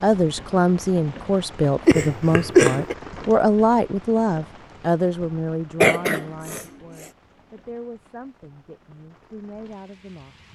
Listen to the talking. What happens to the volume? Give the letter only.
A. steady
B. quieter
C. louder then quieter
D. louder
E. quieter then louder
B.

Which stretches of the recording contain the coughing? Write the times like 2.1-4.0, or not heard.
1.9-3.0, 5.8-6.7.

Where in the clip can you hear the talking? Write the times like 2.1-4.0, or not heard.
0.0-10.5.